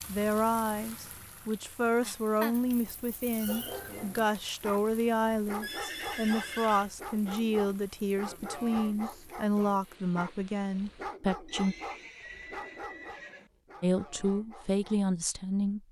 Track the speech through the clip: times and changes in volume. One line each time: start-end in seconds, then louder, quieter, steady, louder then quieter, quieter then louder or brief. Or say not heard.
0.1-11.8 steady
13.8-15.8 brief.